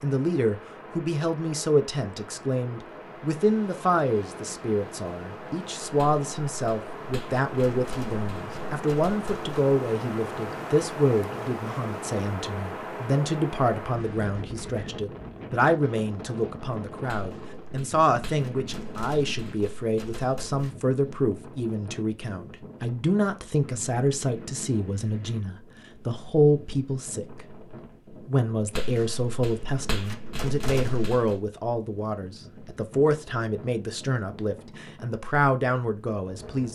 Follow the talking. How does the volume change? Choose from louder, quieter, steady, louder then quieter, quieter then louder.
steady.